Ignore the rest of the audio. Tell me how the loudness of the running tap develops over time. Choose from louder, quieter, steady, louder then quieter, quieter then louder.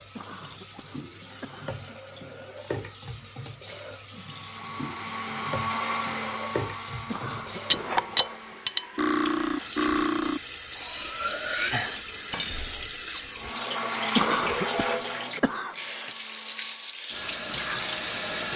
louder.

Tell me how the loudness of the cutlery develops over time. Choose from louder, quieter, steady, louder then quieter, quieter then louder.
quieter.